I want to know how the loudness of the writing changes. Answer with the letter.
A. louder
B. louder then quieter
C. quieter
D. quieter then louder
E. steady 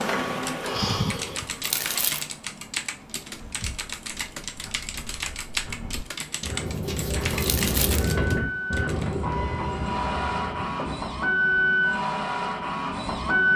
B.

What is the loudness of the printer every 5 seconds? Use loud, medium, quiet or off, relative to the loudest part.
medium, medium, loud.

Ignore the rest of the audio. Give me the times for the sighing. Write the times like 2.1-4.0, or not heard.
0.6-1.8.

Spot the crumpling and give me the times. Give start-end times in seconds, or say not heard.
1.6-2.2, 7.4-8.1.